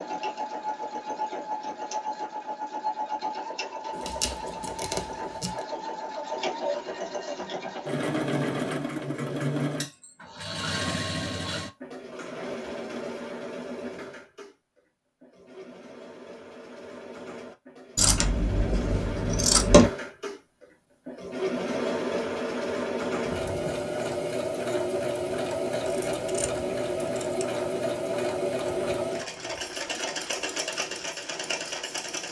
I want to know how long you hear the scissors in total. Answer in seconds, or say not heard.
5 s.